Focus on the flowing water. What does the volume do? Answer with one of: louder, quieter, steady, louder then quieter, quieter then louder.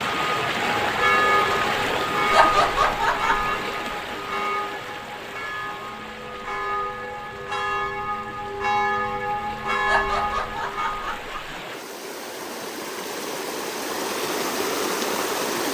quieter then louder.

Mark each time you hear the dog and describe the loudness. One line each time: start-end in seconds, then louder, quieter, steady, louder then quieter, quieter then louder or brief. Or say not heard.
not heard.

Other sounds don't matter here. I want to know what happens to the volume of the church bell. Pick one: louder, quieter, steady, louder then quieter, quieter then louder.
quieter then louder.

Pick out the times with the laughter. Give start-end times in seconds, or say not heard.
2.3-3.5, 9.8-11.6.